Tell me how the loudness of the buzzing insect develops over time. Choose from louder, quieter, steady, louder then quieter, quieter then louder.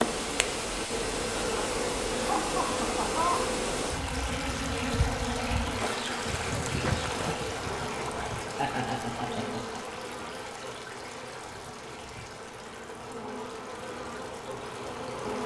quieter.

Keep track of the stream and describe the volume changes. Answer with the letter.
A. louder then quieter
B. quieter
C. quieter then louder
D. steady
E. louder
B.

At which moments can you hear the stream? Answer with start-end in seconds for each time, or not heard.
0.0-15.4.